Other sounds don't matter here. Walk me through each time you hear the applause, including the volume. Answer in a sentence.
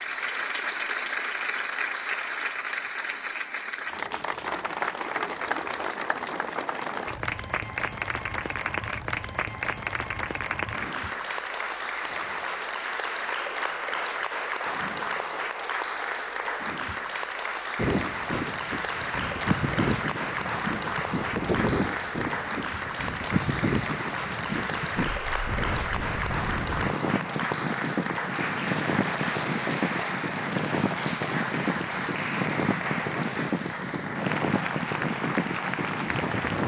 You can hear the applause from 0.0 to 36.6 s, at a steady volume.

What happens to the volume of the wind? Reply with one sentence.
The volume of the wind stays about the same.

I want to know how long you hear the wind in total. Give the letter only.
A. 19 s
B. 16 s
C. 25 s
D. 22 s
A.